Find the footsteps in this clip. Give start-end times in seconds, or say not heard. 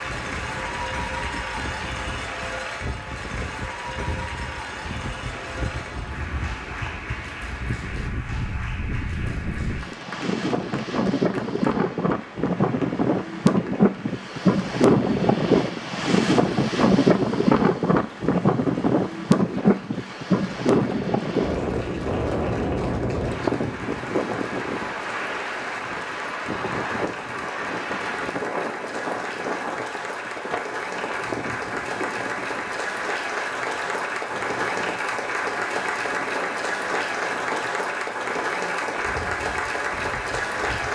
not heard.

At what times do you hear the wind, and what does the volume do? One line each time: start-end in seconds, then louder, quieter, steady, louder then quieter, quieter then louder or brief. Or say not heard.
0.0-40.8 louder then quieter.